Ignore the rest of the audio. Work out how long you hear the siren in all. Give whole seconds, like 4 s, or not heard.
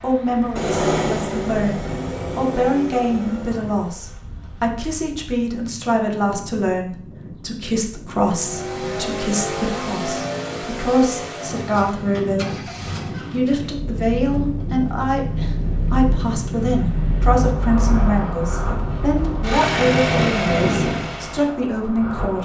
not heard.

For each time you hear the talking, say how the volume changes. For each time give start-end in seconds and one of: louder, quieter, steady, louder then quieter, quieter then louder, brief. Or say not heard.
0.0-12.7 steady
13.3-22.3 steady.